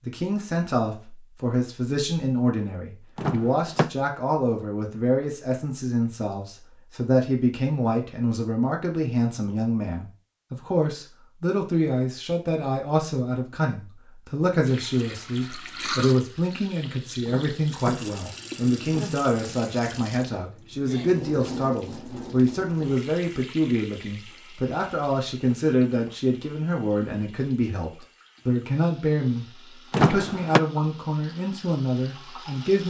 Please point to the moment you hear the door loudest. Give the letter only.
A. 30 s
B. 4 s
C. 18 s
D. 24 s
A.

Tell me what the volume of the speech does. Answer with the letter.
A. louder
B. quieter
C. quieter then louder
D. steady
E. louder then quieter
D.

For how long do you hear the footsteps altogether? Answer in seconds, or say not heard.
not heard.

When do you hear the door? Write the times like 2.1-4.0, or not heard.
3.1-3.9, 17.2-18.3, 29.9-30.6.